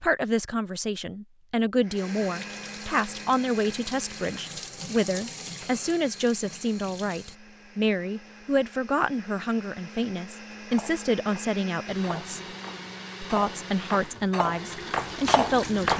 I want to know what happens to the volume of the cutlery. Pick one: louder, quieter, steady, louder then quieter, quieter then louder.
louder.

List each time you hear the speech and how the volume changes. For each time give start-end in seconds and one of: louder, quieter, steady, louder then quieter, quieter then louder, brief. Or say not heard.
0.0-12.4 steady
13.2-15.9 brief.